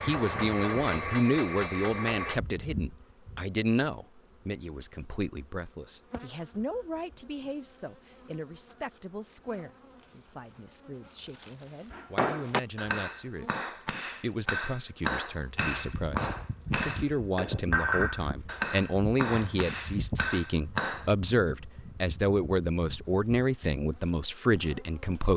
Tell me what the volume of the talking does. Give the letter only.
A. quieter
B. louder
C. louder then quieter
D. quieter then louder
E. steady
D.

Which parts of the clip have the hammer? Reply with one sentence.
You can hear the hammer from 0.0 to 2.4 s and from 11.9 to 21.1 s.